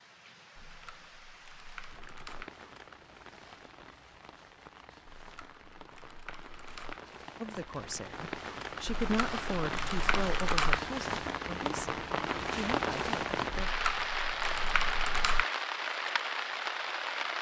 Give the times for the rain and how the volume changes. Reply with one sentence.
You can hear the rain from 0.0 to 17.3 s, getting louder.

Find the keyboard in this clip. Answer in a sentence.
The keyboard can be heard from 0.6 to 2.5 s, from 5.2 to 7.0 s, from 8.8 to 10.8 s and from 13.5 to 15.4 s.